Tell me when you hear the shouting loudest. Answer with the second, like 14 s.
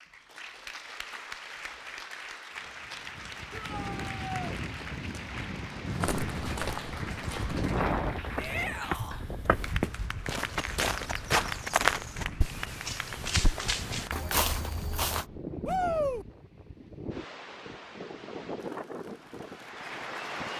16 s.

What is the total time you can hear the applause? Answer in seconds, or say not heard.
16 s.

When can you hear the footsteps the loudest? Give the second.
12 s.